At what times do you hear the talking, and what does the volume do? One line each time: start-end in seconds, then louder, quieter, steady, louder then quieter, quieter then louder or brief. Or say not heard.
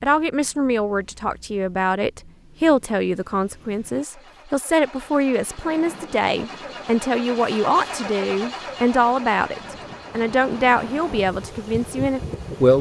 0.0-12.7 steady.